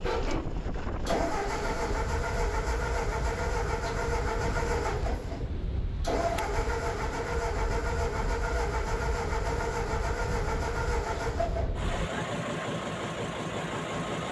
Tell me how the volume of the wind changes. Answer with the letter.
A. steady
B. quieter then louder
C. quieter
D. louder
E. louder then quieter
A.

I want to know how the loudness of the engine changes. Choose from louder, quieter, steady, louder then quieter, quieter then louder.
steady.